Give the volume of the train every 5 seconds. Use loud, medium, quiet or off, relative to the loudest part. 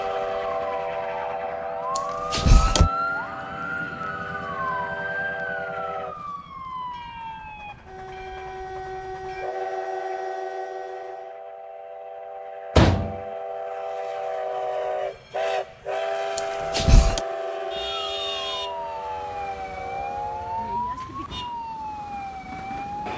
loud, medium, loud, loud, medium.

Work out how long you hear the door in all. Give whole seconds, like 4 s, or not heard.
2 s.